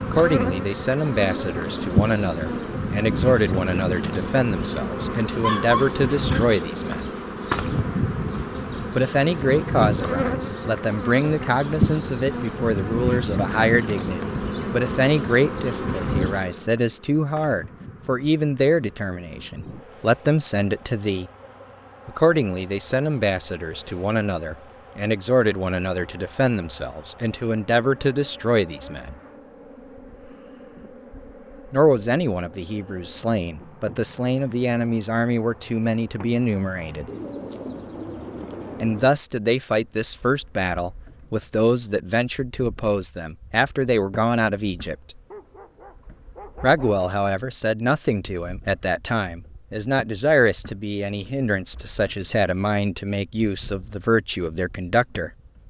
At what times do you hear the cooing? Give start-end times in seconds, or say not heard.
1.2-2.8, 37.0-39.1.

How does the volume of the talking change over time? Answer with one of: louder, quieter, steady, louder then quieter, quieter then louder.
steady.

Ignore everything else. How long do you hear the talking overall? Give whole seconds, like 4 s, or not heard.
47 s.